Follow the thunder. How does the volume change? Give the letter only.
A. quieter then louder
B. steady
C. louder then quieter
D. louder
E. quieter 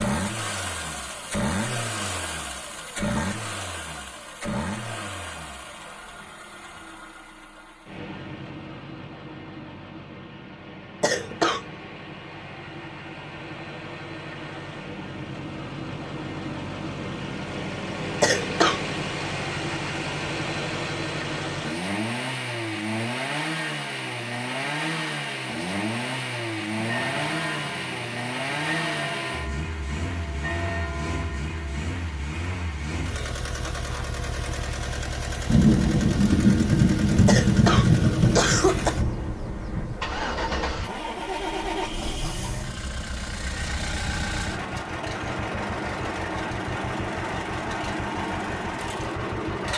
E.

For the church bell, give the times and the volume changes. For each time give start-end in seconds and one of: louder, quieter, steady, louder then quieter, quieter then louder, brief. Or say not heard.
26.7-31.9 steady.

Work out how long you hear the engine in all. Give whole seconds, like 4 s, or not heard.
50 s.